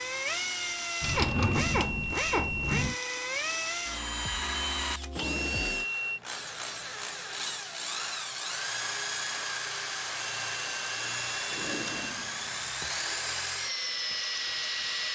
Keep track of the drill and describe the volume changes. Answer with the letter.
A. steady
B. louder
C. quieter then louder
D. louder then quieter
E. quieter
A.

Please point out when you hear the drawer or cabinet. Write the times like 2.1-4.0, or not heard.
1.0-3.0, 5.2-5.8, 11.4-12.9.